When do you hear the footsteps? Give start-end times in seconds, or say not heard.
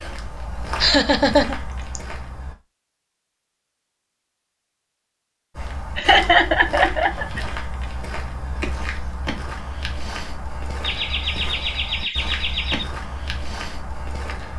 0.0-2.5, 5.5-14.5.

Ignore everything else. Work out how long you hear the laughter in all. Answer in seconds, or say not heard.
5 s.